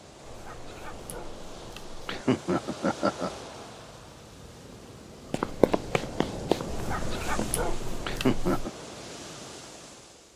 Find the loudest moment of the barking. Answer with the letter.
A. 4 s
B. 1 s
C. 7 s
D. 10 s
C.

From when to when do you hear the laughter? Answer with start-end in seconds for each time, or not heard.
2.0-3.3, 8.1-8.7.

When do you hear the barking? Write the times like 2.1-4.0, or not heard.
0.2-2.0, 6.7-8.7.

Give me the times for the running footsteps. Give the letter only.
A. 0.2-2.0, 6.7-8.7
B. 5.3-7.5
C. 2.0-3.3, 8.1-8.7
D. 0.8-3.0
B.